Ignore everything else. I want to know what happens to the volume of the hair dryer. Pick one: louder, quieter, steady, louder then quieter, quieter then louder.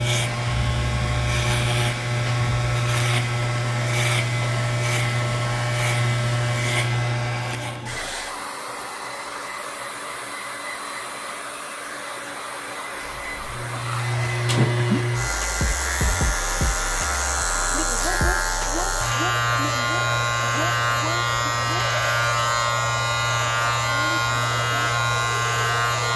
steady.